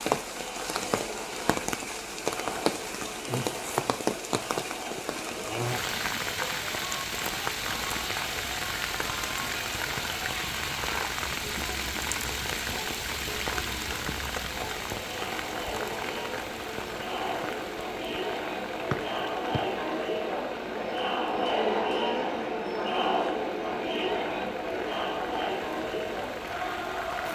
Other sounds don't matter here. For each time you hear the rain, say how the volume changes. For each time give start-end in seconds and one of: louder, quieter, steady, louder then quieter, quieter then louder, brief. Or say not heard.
0.0-27.3 quieter.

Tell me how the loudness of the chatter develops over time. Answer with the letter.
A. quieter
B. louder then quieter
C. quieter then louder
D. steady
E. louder
E.